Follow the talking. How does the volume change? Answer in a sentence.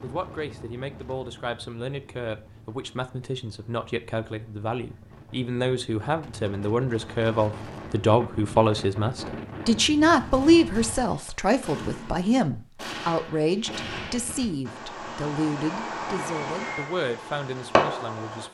The volume of the talking goes up, then down.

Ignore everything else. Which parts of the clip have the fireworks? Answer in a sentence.
You can hear the fireworks from 10.1 to 18.5 s.